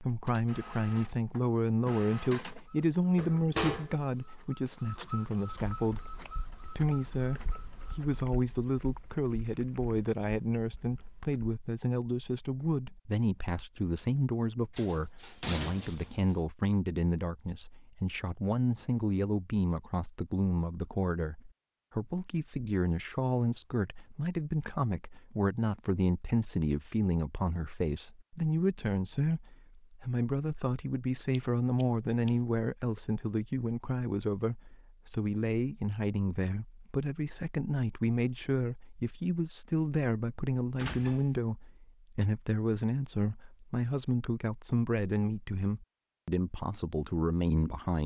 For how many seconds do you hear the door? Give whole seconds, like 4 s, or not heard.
2 s.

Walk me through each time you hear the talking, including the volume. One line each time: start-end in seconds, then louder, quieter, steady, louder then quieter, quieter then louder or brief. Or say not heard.
0.0-48.0 steady.